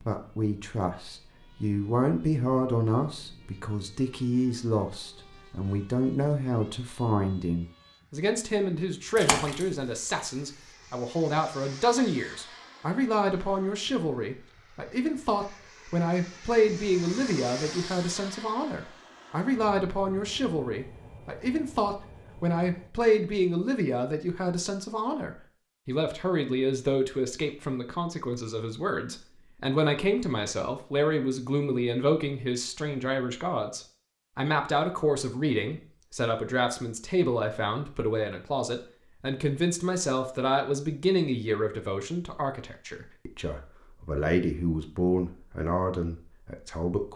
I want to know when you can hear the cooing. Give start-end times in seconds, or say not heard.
not heard.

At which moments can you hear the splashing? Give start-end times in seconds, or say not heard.
9.2-9.8.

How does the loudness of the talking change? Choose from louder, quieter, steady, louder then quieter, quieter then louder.
steady.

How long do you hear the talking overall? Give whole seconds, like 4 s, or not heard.
47 s.